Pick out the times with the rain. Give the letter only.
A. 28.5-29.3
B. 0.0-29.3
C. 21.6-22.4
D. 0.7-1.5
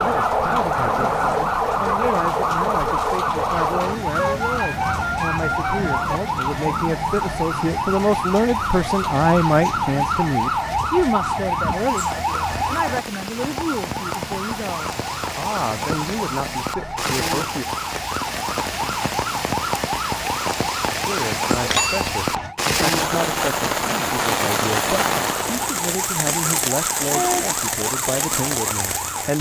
B.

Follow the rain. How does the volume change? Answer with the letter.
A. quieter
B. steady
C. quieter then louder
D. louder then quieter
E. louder
E.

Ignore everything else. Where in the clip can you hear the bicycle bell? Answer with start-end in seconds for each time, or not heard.
21.6-22.4.